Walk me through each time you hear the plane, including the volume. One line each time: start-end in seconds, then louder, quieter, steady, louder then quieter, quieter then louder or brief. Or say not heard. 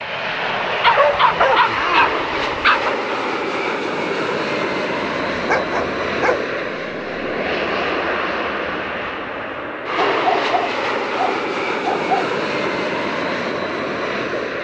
0.0-14.5 steady.